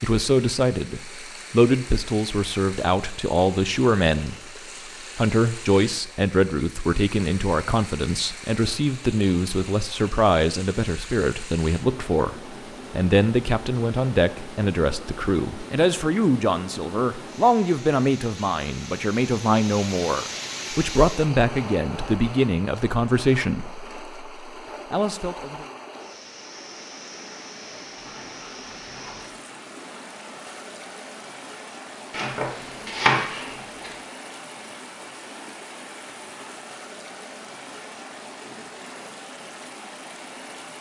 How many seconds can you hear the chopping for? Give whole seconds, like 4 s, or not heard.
2 s.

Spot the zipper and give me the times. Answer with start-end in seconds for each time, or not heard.
27.9-29.4.